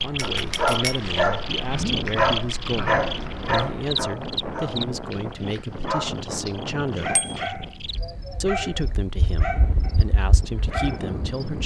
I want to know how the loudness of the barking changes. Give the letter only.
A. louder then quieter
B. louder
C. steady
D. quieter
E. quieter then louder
D.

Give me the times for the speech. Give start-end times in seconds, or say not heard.
0.0-7.2, 8.4-11.6.